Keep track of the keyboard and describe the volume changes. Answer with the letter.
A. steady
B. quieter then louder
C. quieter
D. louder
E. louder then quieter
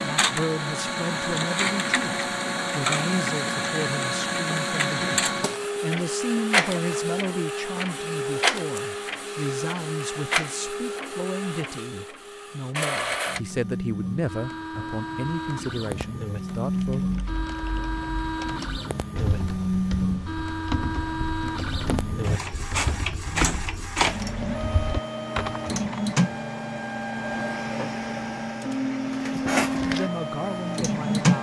D.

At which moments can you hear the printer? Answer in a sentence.
The printer can be heard from 0.0 to 31.3 s.